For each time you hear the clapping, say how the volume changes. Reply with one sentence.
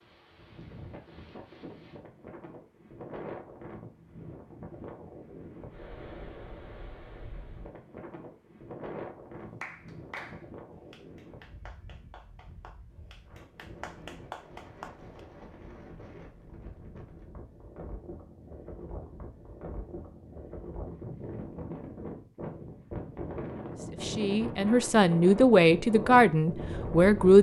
The clapping can be heard from 9.6 to 15.1 s, getting quieter then louder.